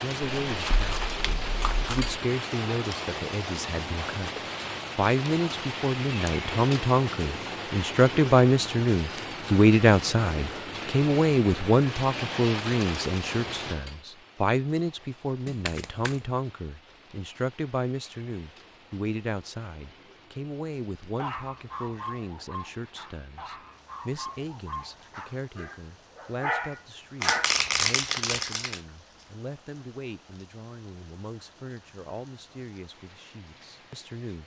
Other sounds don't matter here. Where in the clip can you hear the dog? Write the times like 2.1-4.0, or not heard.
21.1-27.6.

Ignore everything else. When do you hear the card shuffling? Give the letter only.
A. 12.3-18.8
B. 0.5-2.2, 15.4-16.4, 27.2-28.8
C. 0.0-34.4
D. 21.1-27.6
B.